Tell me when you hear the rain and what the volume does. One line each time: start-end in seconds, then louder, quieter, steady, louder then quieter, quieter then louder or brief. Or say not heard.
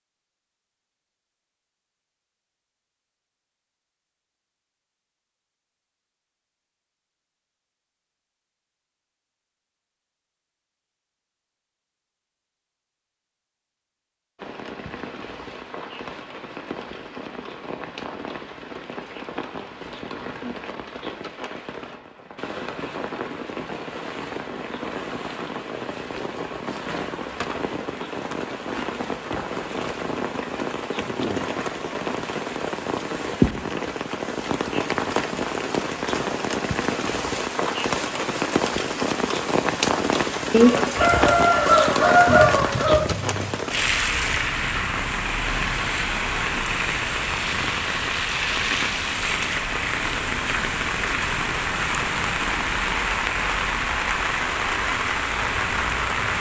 14.3-56.3 louder.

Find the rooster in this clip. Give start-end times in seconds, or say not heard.
40.5-43.5.